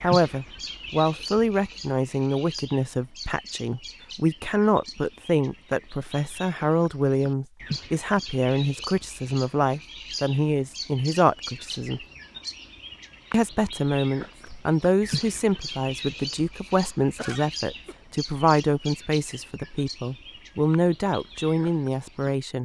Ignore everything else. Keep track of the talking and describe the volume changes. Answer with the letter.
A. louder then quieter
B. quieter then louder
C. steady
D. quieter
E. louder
C.